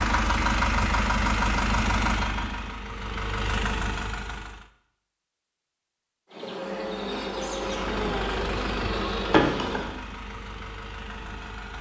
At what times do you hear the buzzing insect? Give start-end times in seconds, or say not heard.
6.3-10.0.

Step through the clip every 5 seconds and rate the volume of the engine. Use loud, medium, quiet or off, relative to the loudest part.
loud, medium, quiet.